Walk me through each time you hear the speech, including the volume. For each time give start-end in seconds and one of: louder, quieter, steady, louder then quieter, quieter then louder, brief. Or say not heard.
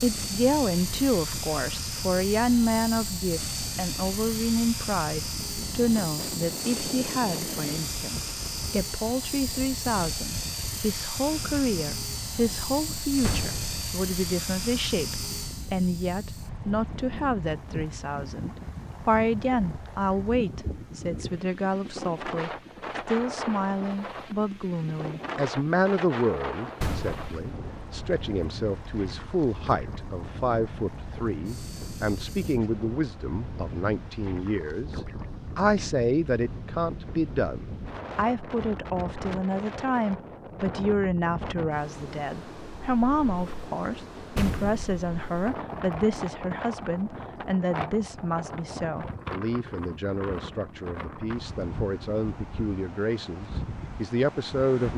0.0-54.9 steady.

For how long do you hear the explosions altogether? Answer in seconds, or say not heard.
2 s.